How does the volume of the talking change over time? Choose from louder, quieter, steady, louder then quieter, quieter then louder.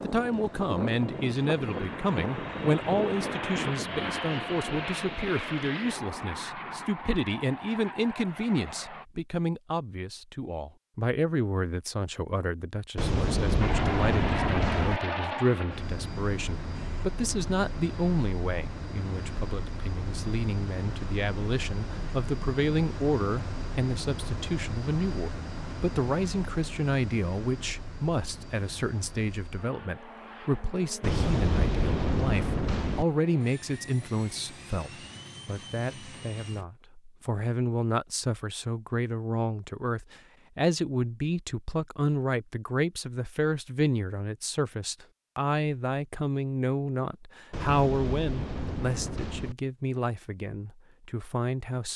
steady.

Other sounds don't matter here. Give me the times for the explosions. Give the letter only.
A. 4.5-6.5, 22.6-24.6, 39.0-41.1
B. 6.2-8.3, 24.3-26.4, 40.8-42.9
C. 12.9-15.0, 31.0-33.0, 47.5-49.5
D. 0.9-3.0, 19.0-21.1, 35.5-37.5
C.